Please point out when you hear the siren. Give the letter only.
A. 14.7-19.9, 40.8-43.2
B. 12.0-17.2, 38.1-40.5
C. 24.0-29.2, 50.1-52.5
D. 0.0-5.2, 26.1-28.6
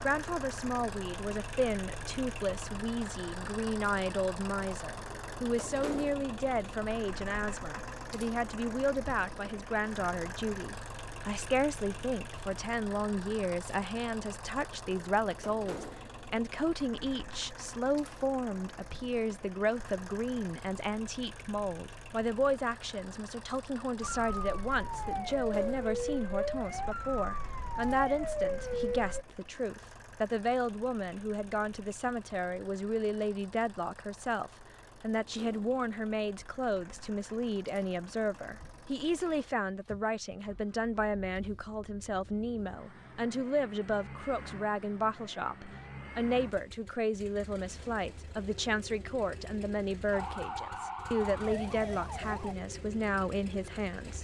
C.